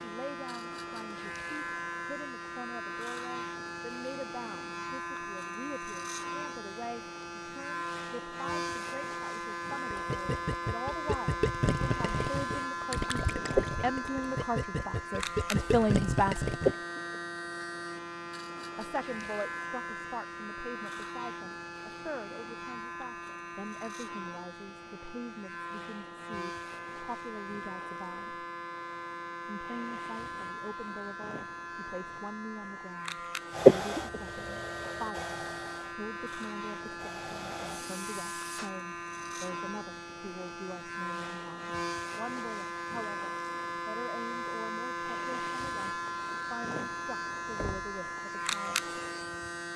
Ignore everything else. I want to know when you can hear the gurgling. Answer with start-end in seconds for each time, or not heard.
9.9-16.8.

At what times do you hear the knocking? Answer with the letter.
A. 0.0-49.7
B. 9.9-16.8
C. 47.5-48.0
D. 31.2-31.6
C.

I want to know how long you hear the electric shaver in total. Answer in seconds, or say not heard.
50 s.